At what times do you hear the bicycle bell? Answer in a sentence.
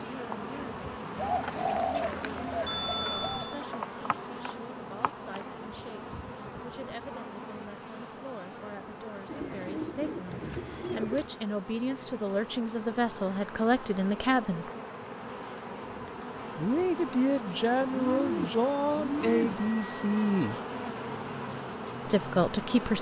The bicycle bell can be heard from 2.6 to 3.6 s and from 18.6 to 20.6 s.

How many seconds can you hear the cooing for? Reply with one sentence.
You can hear the cooing for 6 seconds altogether.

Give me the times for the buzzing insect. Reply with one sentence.
The buzzing insect can be heard from 0.0 to 22.9 s.